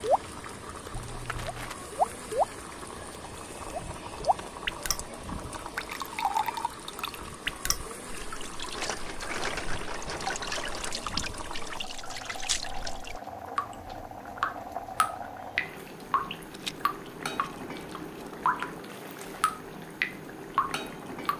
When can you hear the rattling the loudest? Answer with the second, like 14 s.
9 s.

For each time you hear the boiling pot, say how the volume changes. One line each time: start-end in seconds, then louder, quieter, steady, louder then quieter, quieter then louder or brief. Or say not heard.
0.0-21.3 steady.